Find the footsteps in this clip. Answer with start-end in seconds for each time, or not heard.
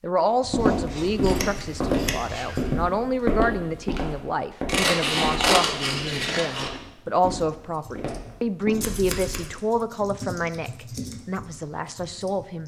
0.5-8.8.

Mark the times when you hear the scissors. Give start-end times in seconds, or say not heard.
0.4-2.6, 4.7-6.7, 8.8-9.5.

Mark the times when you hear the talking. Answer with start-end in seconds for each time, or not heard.
0.0-12.6.